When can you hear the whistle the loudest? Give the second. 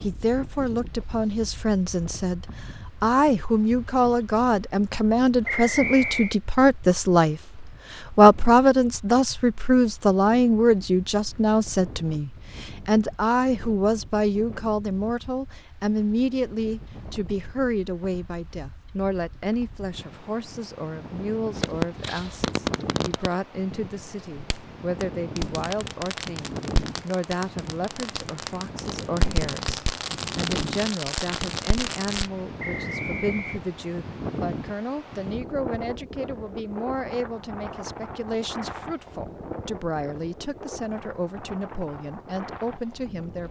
6 s.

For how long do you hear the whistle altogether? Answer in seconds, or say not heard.
2 s.